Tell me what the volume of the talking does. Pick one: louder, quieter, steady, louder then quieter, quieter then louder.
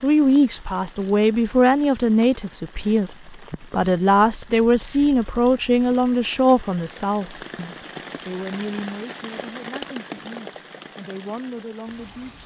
quieter.